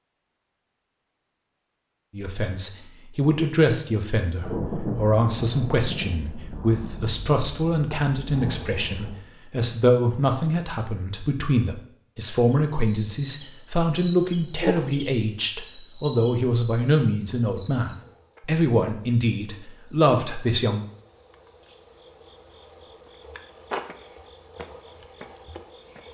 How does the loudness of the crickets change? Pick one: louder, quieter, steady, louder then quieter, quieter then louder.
quieter then louder.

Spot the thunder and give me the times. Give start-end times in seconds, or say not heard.
4.3-9.2.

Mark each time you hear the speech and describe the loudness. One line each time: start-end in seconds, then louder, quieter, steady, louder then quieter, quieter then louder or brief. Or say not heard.
2.1-20.9 steady.